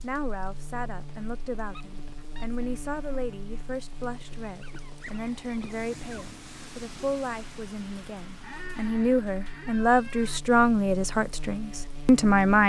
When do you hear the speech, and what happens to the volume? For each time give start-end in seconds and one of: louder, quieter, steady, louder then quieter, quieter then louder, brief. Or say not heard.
0.0-12.6 louder.